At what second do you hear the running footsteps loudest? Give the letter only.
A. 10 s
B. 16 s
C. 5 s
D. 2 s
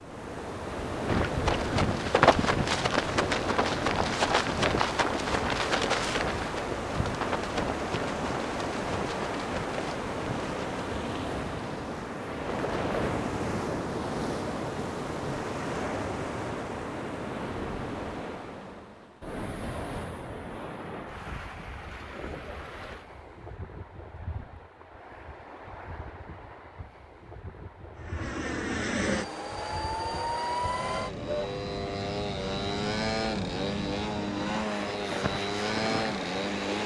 D.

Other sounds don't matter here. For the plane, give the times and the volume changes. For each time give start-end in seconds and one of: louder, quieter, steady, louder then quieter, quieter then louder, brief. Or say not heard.
27.9-36.8 steady.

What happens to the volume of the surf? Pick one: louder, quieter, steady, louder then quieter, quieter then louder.
quieter then louder.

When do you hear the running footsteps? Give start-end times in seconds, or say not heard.
1.1-10.8.